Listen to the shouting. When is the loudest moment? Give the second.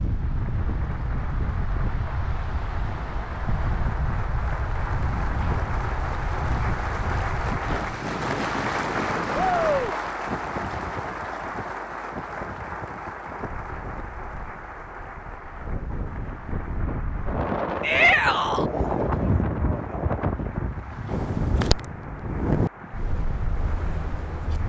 18 s.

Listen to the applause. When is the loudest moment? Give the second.
9 s.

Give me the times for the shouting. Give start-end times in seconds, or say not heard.
9.3-9.9, 17.8-18.6.